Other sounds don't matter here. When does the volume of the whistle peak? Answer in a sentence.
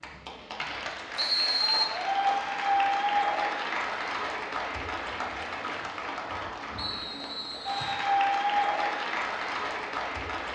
The loudest moment of the whistle is at 2 seconds.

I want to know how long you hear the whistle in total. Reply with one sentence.
You can hear the whistle for 2 seconds altogether.